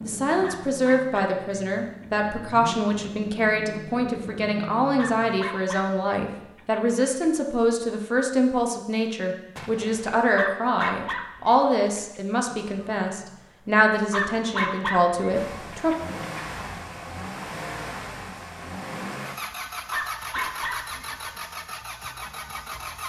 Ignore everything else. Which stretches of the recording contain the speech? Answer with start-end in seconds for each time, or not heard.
0.1-15.9.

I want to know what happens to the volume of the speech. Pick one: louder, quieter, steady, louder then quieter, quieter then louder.
steady.